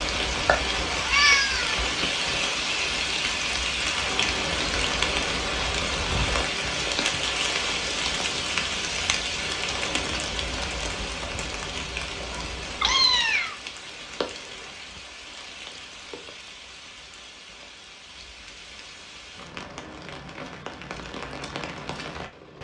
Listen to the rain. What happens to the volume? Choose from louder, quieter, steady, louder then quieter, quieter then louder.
quieter.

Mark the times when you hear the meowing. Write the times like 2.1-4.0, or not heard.
0.3-1.9, 12.3-13.6.